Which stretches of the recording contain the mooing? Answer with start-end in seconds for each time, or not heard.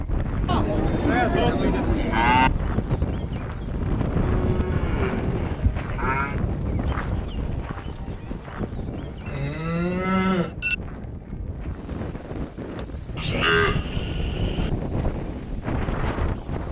0.5-2.5, 4.2-6.3, 9.2-10.8, 13.2-14.7.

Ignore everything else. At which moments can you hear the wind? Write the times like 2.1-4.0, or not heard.
0.0-16.6.